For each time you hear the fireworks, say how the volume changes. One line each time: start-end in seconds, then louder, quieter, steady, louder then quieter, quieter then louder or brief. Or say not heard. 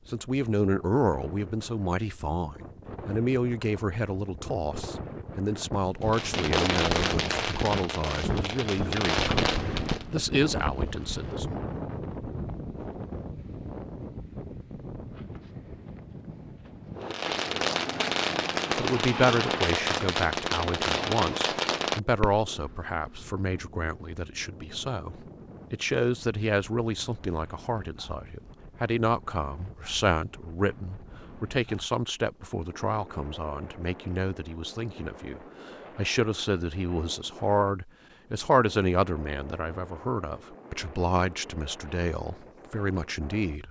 6.0-10.1 quieter then louder
17.0-22.4 steady.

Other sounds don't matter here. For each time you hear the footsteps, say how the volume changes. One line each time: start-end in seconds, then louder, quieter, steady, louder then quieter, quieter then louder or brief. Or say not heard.
not heard.